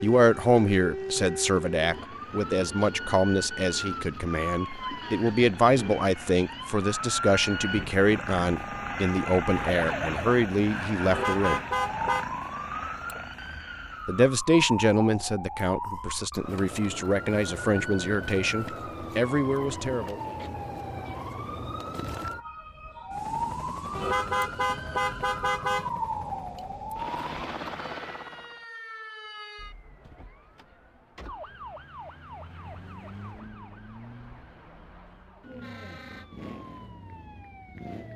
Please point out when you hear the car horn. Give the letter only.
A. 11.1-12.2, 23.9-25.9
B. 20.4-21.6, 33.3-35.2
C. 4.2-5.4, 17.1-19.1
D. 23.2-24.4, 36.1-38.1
A.